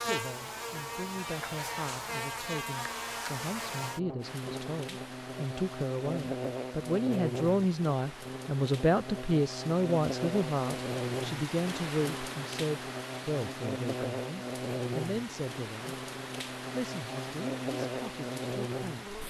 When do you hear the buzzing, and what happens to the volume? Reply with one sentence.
The buzzing can be heard from 0.0 to 19.2 s, at a steady volume.